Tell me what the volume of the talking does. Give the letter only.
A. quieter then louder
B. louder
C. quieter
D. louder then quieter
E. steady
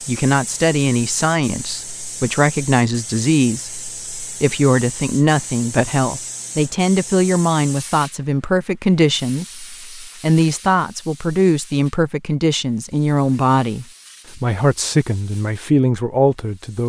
E.